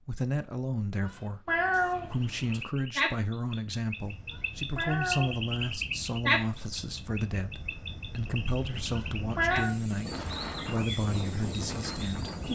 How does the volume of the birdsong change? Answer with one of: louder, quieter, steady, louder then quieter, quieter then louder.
quieter.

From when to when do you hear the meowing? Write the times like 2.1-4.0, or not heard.
1.0-2.6, 4.3-5.5, 8.9-9.8.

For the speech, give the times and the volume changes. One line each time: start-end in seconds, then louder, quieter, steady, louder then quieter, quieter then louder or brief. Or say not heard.
0.0-12.5 steady.